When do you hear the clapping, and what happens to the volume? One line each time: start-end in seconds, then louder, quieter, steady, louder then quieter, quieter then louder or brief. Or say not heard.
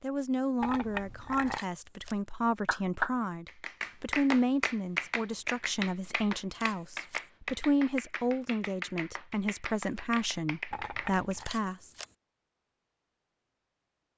2.6-11.3 quieter.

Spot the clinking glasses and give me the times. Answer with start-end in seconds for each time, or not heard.
0.6-1.6, 10.7-11.5.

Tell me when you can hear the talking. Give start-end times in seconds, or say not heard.
0.0-11.9.